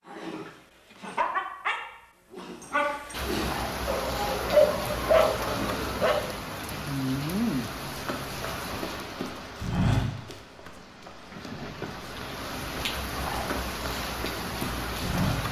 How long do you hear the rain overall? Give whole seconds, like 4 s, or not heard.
12 s.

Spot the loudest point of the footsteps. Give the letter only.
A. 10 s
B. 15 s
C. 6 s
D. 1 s
A.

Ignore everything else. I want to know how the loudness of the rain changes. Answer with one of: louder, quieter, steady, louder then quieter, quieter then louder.
quieter then louder.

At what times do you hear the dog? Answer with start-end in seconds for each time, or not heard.
0.1-6.2.